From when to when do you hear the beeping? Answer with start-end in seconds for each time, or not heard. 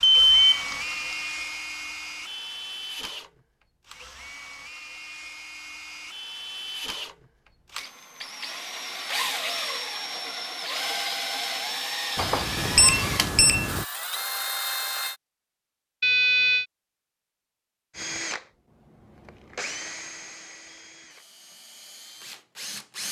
0.0-0.8, 12.2-13.8, 16.0-16.6.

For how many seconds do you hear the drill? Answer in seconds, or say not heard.
20 s.